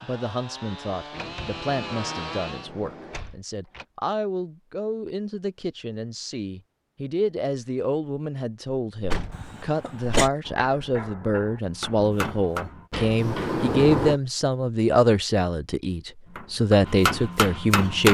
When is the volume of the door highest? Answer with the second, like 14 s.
14 s.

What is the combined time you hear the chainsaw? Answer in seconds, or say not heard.
3 s.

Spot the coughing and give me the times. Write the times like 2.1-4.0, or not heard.
9.3-10.3.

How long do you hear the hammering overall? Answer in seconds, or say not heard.
4 s.